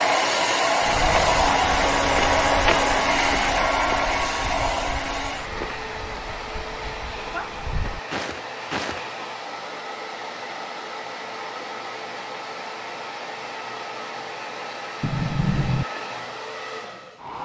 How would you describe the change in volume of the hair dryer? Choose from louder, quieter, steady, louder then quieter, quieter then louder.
quieter.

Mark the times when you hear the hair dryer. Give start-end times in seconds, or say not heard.
0.0-17.4.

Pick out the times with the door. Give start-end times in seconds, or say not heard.
15.0-15.8.